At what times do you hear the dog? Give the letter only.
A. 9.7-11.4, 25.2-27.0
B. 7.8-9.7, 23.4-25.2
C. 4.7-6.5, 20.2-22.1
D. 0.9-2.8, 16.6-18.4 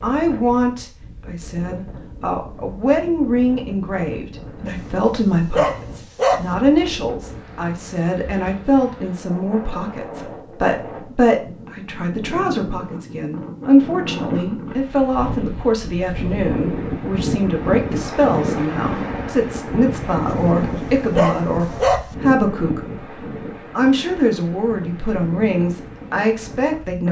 C.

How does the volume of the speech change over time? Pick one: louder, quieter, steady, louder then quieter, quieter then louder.
steady.